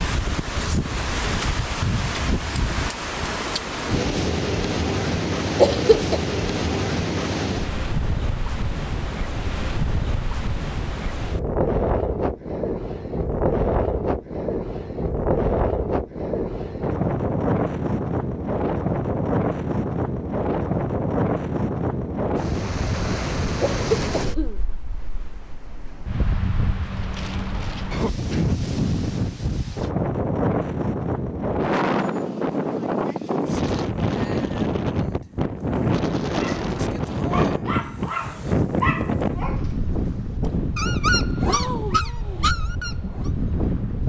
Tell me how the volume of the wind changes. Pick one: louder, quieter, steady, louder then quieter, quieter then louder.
steady.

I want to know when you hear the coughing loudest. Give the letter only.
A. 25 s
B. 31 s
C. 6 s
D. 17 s
C.